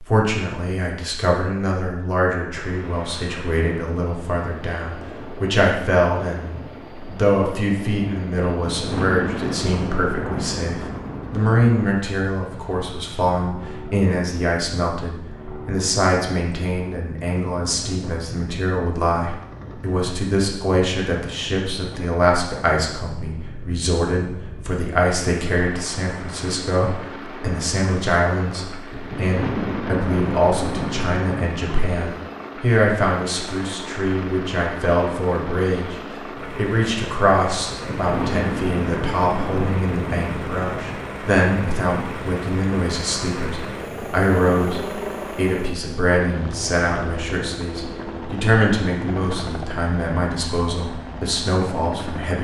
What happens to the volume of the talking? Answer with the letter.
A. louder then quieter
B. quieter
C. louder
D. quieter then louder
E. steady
E.